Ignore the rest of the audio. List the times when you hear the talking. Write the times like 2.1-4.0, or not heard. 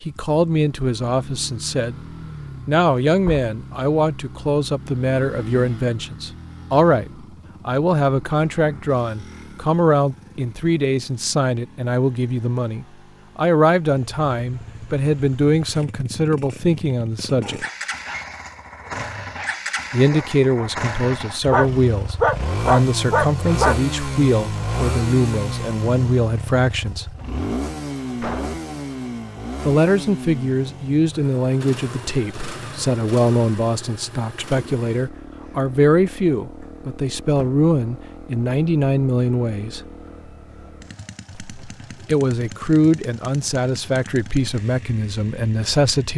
0.0-2.0, 2.6-17.6, 19.9-27.1, 29.6-39.8, 41.4-46.1.